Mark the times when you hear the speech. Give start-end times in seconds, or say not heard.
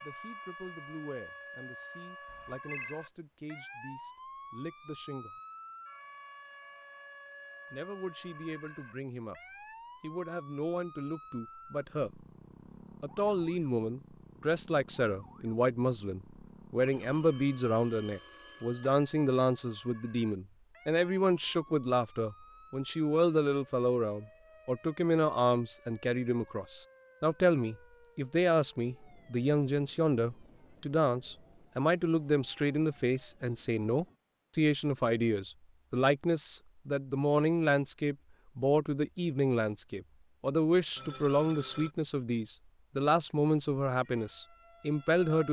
0.0-5.4, 7.7-9.4, 10.0-12.2, 13.0-45.4.